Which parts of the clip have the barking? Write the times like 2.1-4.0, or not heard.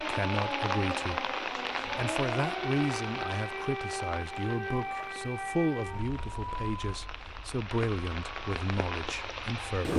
not heard.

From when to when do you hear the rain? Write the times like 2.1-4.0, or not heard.
0.0-9.9.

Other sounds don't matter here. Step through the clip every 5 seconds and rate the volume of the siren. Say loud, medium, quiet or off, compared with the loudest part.
loud, medium.